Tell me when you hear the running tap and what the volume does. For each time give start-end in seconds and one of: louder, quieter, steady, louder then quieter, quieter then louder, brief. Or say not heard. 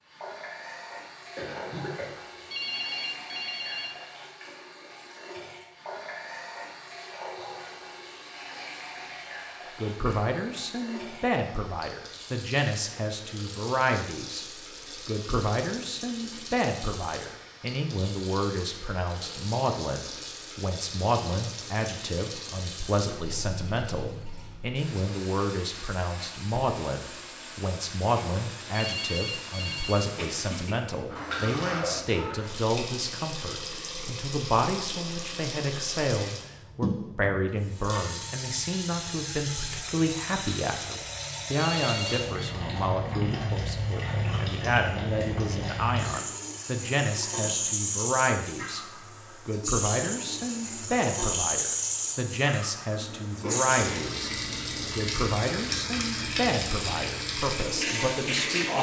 0.0-58.7 louder.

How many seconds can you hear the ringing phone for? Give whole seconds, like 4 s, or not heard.
4 s.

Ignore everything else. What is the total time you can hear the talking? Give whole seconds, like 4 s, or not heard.
47 s.